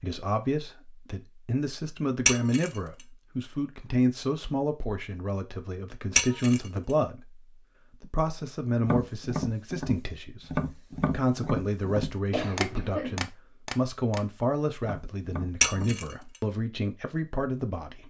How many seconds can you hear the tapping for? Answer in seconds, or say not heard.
7 s.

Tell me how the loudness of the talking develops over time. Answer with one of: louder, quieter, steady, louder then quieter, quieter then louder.
steady.